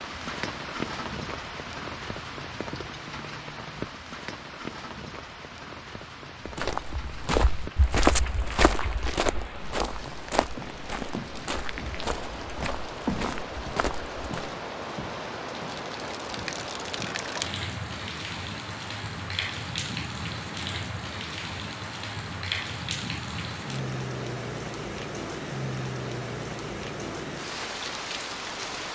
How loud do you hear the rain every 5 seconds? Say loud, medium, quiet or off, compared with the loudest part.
loud, medium, loud, loud, loud, loud.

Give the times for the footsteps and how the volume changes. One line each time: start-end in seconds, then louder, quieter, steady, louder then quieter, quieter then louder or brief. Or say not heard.
6.5-14.6 quieter.